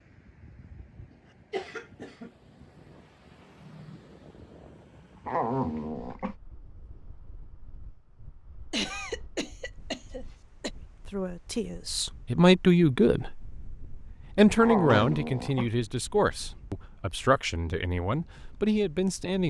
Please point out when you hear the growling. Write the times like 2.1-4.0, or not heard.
5.2-6.3, 14.6-15.7.